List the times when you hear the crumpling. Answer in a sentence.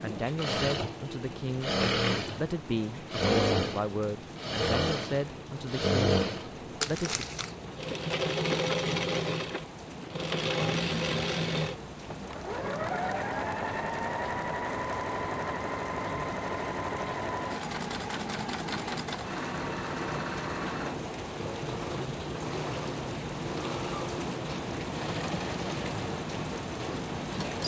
You can hear the crumpling from 6.8 to 7.5 s.